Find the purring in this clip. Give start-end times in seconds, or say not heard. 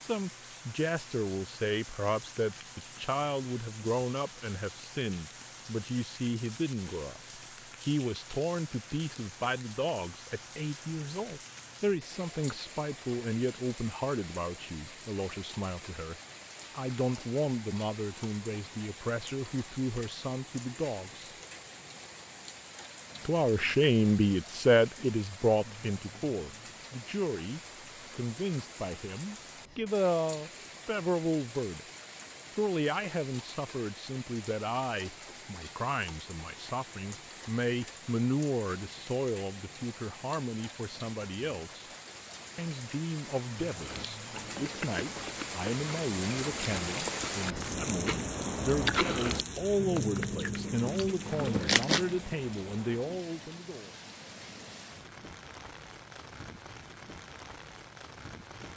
not heard.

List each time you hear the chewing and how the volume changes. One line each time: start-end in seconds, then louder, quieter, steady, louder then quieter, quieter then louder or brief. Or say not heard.
43.8-52.3 louder.